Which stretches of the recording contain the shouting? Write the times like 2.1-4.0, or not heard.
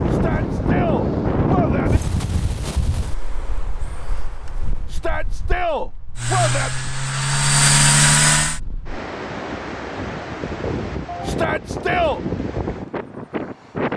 0.1-2.0, 4.9-6.7, 11.2-12.2.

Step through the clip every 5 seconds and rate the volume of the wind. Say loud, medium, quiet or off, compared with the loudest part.
loud, medium, loud.